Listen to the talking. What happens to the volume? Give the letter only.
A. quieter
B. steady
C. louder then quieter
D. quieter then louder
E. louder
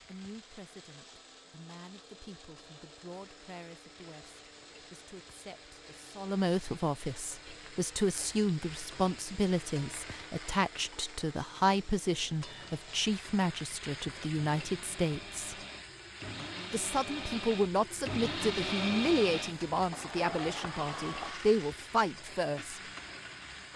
E.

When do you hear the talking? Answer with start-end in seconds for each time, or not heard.
0.0-15.6, 16.7-22.8.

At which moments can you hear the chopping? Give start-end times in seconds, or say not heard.
not heard.